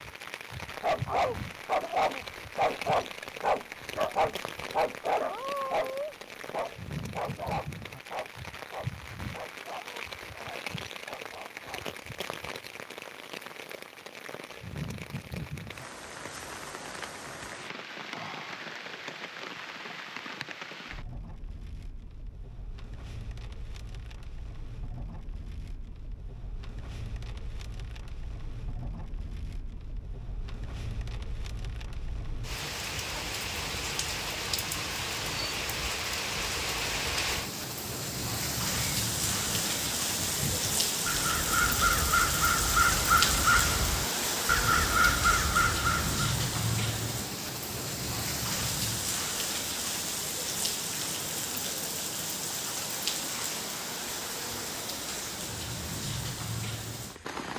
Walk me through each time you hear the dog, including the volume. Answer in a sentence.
The dog can be heard from 0.8 to 11.8 s, getting quieter.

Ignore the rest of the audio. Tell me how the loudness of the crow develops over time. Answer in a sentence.
The loudness of the crow goes up.